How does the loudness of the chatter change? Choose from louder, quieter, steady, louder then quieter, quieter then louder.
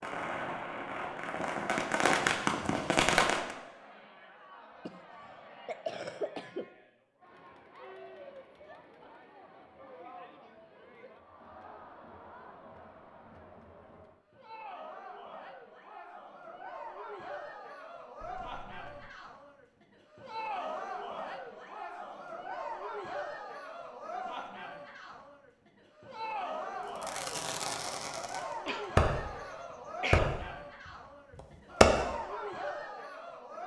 louder.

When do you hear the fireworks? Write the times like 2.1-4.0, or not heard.
0.0-3.5, 26.9-32.0.